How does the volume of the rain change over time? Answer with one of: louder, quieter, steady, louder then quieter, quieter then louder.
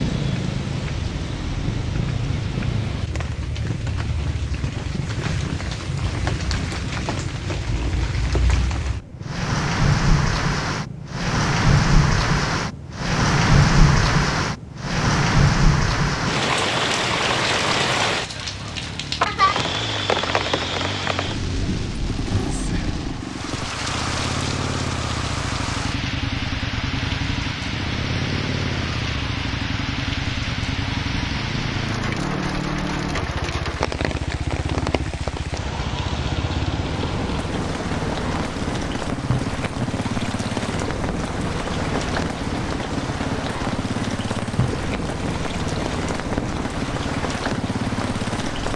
louder then quieter.